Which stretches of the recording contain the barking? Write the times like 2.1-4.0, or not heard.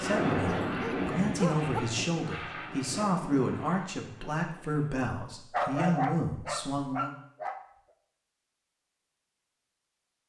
0.5-1.8, 5.5-7.6.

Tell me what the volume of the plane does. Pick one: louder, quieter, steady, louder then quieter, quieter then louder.
quieter.